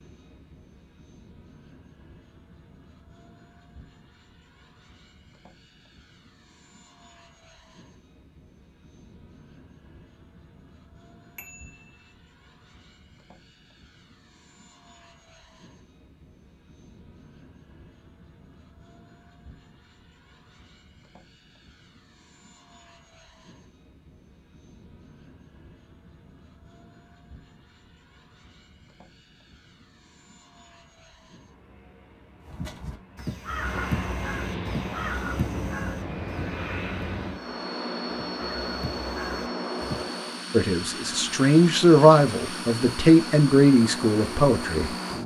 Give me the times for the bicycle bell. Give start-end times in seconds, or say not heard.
11.3-12.1.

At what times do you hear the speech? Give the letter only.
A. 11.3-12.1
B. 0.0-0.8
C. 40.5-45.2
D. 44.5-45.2
C.